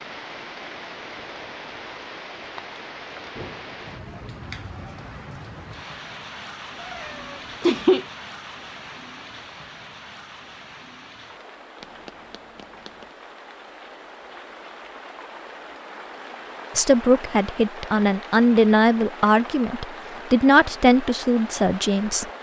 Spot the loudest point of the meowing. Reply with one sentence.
The volume of the meowing peaks at 8 seconds.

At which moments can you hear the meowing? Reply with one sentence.
The meowing can be heard from 6.8 to 8.1 s and from 11.8 to 13.1 s.